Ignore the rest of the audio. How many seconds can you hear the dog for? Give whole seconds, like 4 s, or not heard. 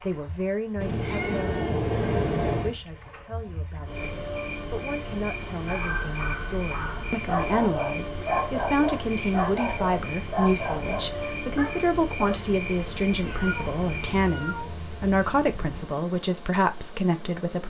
7 s.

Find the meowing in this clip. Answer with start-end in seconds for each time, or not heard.
0.8-2.8, 13.2-15.8.